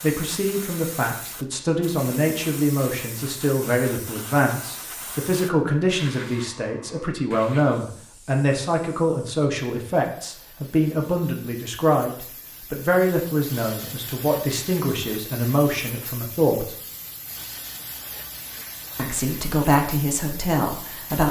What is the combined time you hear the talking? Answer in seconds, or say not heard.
19 s.